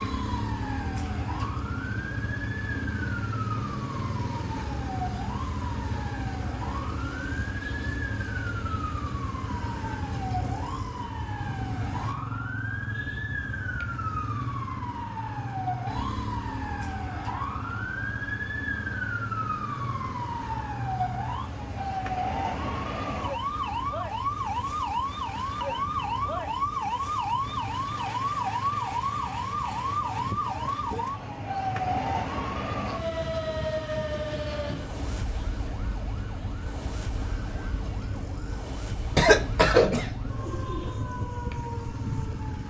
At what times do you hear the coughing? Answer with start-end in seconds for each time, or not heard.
39.1-40.9.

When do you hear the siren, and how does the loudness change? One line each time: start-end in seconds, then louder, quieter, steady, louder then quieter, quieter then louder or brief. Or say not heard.
0.0-42.6 louder then quieter.